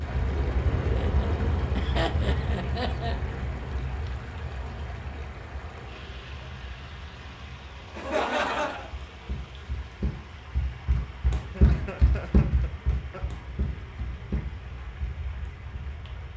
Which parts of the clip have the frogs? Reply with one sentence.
You can't hear the frogs here.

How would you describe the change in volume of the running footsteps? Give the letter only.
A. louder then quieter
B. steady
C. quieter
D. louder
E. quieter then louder
A.